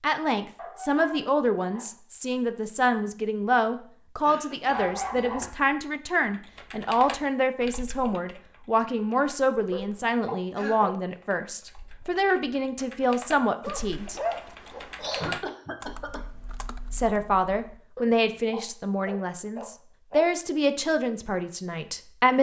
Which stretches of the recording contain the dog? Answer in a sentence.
You can hear the dog from 0.6 to 1.9 s, from 4.7 to 5.6 s, from 9.7 to 10.9 s, from 13.6 to 15.3 s and from 17.9 to 20.2 s.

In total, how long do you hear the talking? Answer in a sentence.
The talking can be heard for 20 seconds in total.